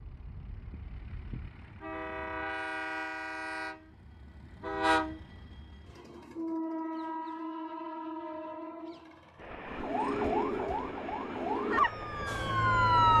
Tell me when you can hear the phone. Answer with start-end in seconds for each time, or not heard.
not heard.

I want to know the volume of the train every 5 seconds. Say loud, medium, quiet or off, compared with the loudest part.
loud, loud, medium.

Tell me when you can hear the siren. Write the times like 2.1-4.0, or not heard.
9.7-13.1.